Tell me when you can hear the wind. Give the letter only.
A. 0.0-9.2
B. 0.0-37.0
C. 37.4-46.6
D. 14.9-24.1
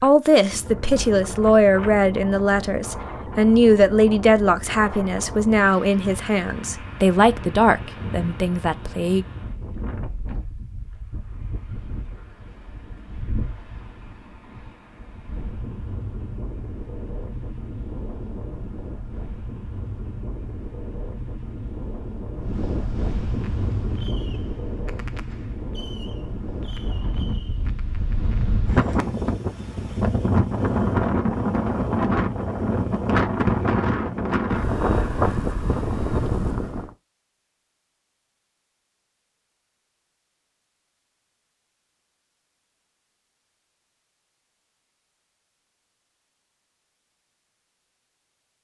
B.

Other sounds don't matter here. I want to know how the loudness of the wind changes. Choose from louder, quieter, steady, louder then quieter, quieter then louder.
louder.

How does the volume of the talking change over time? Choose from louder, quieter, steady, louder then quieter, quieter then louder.
steady.